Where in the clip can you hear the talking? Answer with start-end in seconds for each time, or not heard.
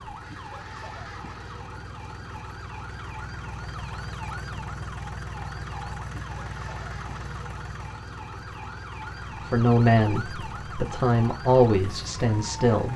9.5-12.9.